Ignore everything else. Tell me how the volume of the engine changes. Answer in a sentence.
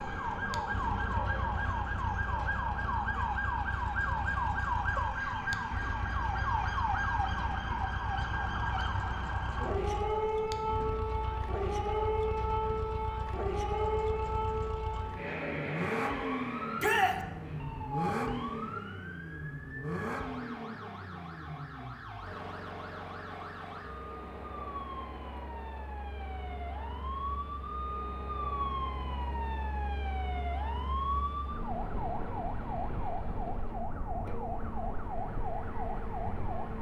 The loudness of the engine goes up, then down.